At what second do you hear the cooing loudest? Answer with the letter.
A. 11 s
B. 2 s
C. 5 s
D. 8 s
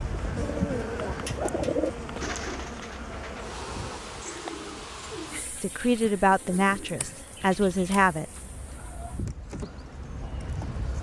B.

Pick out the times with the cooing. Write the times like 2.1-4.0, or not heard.
0.1-9.2.